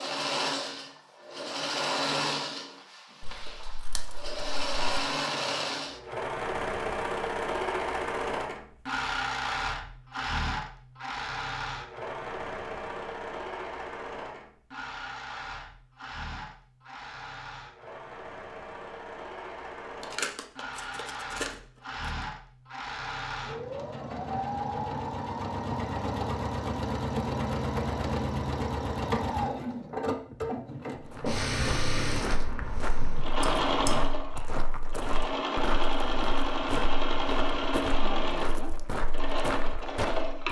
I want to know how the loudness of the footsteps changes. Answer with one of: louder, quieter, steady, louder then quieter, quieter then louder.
steady.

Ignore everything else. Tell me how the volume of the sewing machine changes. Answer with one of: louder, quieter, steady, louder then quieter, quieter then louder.
quieter then louder.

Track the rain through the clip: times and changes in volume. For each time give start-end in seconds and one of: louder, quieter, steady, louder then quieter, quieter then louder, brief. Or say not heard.
not heard.